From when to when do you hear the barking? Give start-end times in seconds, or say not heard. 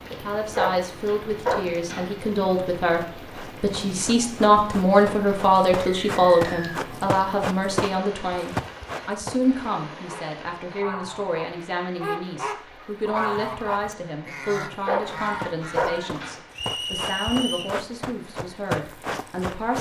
0.5-2.1, 14.8-16.4.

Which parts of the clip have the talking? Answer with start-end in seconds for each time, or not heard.
0.1-19.7.